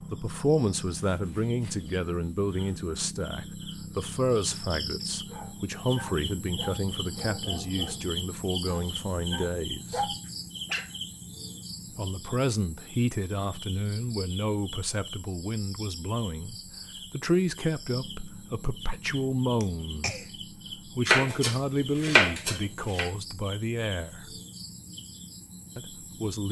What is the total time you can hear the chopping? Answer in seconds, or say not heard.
2 s.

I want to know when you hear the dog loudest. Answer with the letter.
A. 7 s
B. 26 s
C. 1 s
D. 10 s
D.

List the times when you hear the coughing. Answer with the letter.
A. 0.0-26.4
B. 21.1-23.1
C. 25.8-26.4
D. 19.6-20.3
D.